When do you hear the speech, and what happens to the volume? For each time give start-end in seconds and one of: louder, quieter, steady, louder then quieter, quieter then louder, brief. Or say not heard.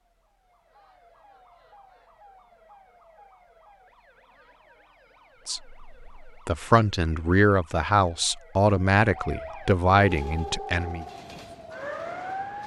5.5-11.1 steady.